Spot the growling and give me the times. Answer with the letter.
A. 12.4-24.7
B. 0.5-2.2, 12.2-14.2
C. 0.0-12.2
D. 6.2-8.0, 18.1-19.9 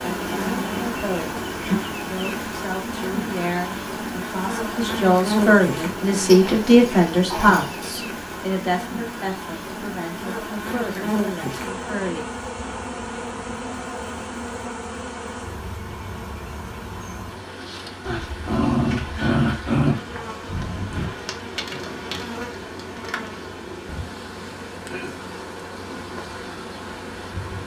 D.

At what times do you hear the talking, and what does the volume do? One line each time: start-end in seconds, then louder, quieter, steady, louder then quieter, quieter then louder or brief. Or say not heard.
0.0-12.2 louder then quieter.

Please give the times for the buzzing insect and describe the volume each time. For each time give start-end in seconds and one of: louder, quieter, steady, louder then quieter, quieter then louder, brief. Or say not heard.
0.0-27.6 quieter.